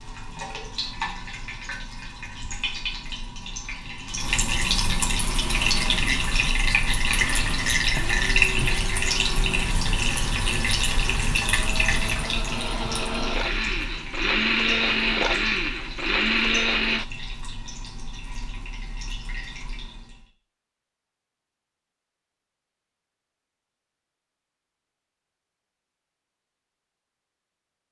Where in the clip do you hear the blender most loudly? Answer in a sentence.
The volume of the blender peaks at 15 seconds.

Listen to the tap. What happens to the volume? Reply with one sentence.
The volume of the tap goes up, then down.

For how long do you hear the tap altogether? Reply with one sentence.
You can hear the tap for 20 seconds altogether.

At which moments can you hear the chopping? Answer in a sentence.
The chopping can't be heard in this clip.